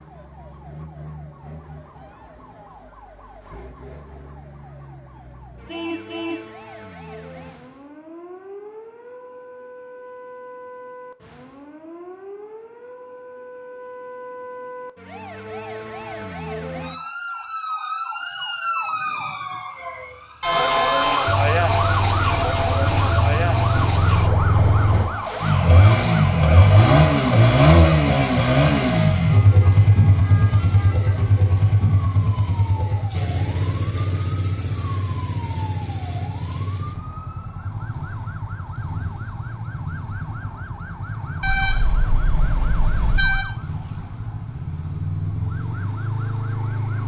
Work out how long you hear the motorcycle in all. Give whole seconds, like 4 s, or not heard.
26 s.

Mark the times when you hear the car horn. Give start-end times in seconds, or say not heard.
5.7-6.5, 20.4-21.3, 41.4-43.5.